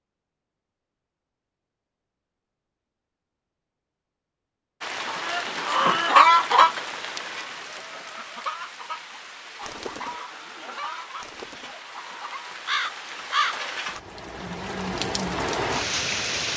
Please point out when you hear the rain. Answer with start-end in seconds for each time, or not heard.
4.8-16.5.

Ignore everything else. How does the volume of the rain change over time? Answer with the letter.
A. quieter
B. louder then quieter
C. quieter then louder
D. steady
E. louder
C.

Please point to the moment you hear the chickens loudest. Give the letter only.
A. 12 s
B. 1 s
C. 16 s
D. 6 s
D.